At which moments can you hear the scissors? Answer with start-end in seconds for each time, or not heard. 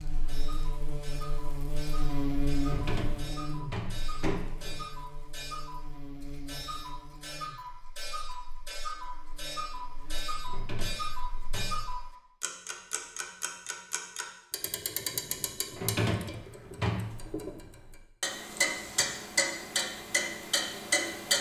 not heard.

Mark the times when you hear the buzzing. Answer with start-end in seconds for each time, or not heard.
0.0-11.9.